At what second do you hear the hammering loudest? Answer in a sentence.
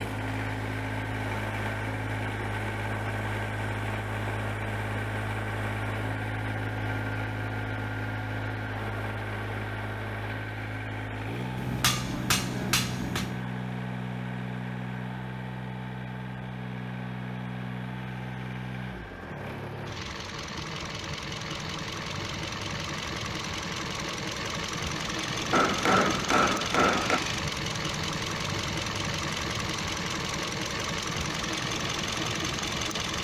The loudest moment of the hammering is at 26 seconds.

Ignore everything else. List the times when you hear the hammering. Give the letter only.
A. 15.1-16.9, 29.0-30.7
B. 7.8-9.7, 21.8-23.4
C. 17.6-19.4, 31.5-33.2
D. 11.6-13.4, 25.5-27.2
D.